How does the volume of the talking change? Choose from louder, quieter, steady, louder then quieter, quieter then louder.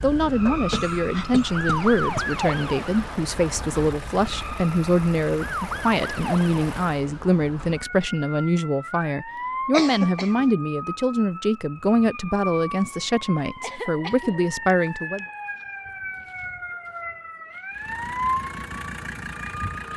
steady.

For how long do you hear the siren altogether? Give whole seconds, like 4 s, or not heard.
20 s.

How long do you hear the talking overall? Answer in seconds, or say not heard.
15 s.